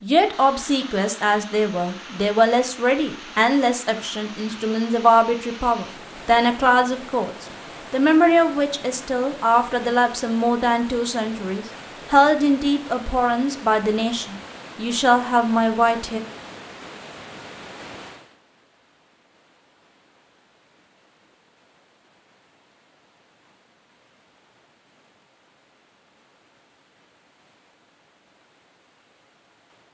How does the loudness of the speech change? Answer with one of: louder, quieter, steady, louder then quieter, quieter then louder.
steady.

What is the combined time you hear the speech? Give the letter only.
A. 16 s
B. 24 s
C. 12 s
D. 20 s
A.